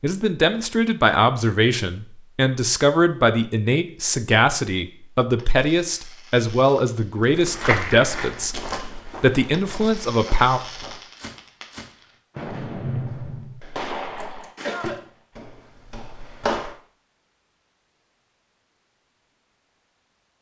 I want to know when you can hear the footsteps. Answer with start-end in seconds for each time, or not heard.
7.2-16.8.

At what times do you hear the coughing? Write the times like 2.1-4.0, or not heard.
14.2-15.0.